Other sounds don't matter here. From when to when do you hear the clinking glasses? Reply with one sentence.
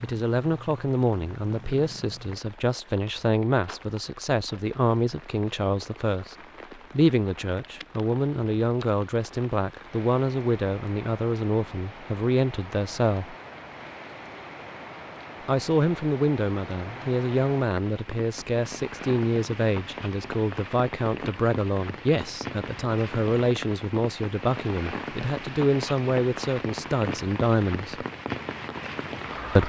You can't hear the clinking glasses here.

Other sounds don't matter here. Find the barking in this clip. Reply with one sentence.
You can't hear the barking here.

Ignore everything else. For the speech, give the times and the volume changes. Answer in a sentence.
You can hear the speech from 0.0 to 13.3 s, at a steady volume; and from 15.4 to 28.1 s, at a steady volume.